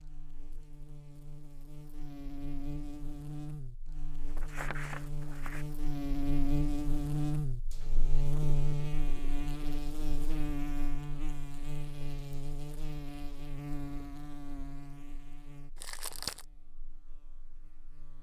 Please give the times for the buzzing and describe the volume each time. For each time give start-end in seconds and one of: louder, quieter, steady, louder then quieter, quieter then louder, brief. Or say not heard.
0.0-18.1 louder then quieter.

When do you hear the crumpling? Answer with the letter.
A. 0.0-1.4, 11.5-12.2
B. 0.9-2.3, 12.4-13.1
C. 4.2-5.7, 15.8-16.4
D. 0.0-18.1
C.